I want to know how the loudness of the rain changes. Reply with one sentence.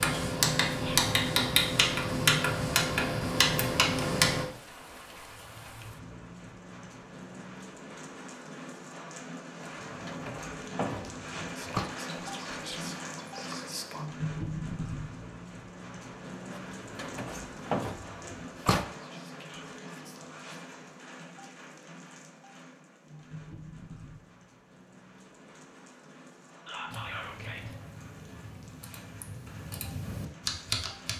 The volume of the rain goes up, then down.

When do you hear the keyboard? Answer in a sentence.
The keyboard can be heard from 0.0 to 4.5 s and from 26.9 to 31.1 s.